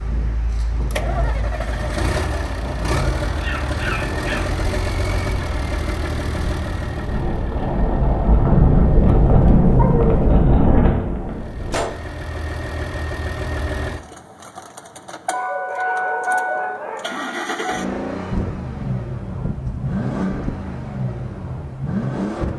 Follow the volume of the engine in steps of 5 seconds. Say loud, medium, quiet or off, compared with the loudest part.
loud, medium, medium, loud, loud.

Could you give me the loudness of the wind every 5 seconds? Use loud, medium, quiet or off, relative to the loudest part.
quiet, loud, loud, off, off.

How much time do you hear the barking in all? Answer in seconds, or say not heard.
5 s.